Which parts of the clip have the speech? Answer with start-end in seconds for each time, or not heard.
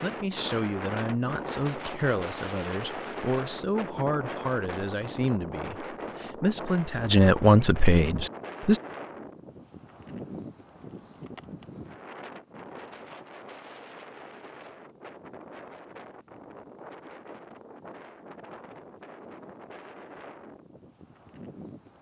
0.0-8.8.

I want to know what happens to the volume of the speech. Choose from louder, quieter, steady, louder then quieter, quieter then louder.
louder.